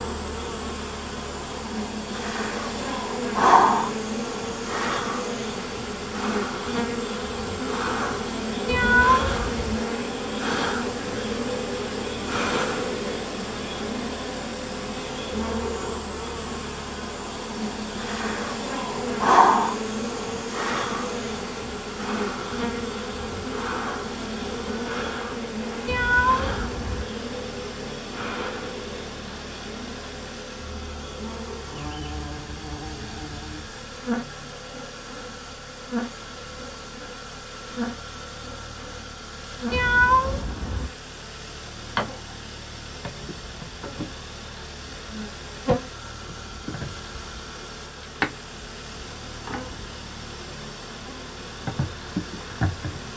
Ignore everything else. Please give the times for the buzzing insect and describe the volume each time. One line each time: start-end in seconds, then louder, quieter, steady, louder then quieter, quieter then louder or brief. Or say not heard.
0.0-53.1 quieter.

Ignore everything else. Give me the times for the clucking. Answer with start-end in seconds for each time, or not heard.
not heard.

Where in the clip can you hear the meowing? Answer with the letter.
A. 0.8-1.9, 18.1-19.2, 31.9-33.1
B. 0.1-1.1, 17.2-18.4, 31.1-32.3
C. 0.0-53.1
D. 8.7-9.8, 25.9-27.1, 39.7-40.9
D.